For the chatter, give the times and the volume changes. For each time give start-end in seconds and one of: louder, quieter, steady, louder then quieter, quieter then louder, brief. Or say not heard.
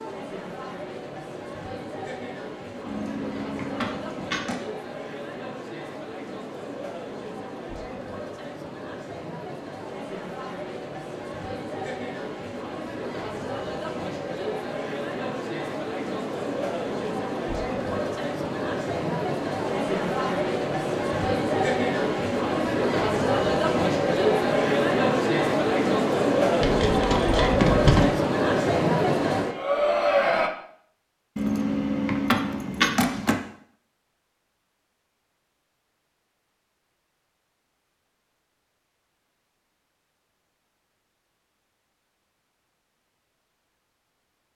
0.0-30.5 louder.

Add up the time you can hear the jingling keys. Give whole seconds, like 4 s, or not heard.
5 s.